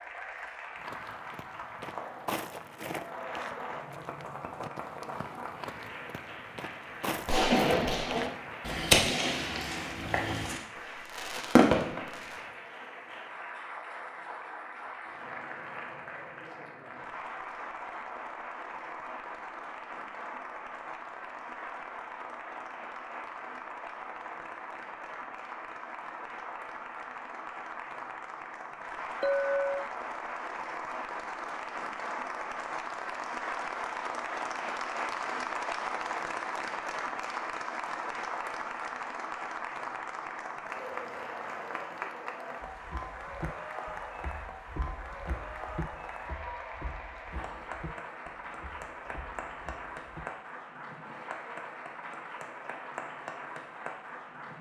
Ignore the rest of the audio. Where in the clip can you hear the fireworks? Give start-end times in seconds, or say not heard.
7.2-12.2.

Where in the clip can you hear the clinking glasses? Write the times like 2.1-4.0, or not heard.
29.2-29.9.